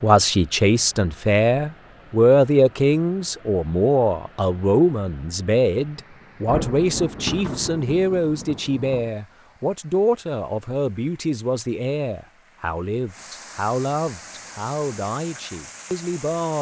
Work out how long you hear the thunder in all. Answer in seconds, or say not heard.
3 s.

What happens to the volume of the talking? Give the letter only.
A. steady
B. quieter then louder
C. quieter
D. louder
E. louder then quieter
C.